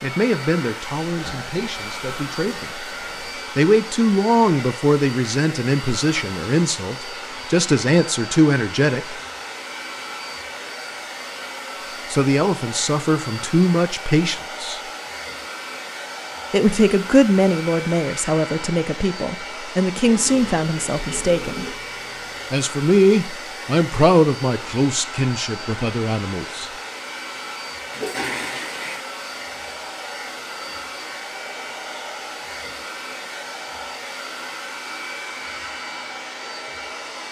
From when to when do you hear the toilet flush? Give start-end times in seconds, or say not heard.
1.1-3.5, 20.1-22.6, 27.9-29.1.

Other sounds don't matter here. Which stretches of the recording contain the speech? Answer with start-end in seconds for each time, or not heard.
0.0-2.8, 3.5-9.2, 12.1-14.8, 16.5-21.6, 22.5-26.7.